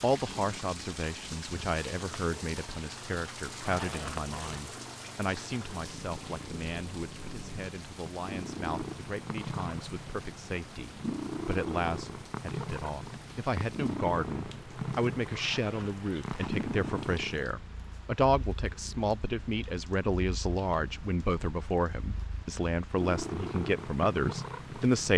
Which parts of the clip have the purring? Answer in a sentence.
You can hear the purring from 0.1 to 25.1 s.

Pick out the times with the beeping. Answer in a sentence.
You can't hear the beeping here.